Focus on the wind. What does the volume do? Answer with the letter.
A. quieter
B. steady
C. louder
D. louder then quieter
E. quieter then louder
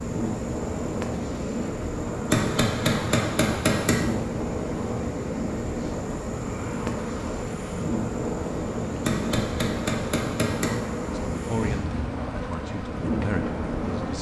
B.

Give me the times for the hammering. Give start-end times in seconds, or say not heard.
2.3-4.0, 9.1-10.8.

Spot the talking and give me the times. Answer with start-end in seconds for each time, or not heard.
11.1-14.1.